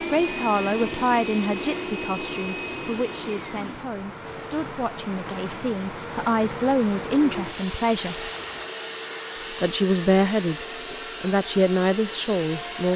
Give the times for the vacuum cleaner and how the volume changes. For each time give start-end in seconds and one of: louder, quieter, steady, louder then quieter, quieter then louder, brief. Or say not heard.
0.0-12.9 quieter then louder.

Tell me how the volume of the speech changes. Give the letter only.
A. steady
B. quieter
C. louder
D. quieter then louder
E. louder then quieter
D.